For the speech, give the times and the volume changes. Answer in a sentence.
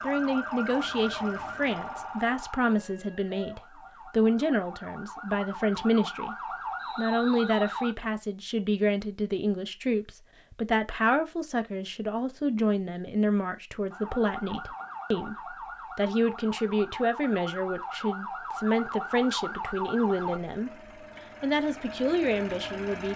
The speech can be heard from 0.0 to 20.8 s, at a steady volume; and briefly from 21.4 to 23.1 s.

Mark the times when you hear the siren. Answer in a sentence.
You can hear the siren from 0.0 to 8.0 s and from 13.9 to 20.4 s.